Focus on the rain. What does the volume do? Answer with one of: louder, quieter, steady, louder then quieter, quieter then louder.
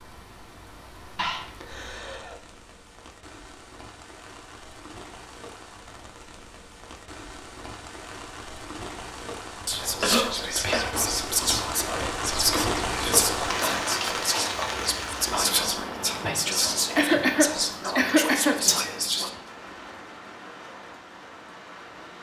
louder then quieter.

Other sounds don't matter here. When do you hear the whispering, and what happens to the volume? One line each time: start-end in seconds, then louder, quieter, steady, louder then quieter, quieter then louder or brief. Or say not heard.
9.7-19.3 steady.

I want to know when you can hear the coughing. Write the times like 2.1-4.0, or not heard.
1.1-2.4, 10.0-11.1, 16.9-18.6.